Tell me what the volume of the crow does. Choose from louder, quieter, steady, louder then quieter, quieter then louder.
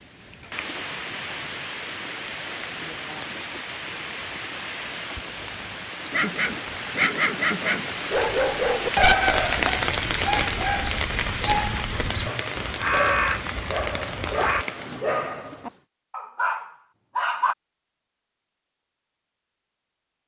louder then quieter.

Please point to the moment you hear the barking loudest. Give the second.
9 s.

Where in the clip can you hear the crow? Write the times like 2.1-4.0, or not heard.
9.2-14.7.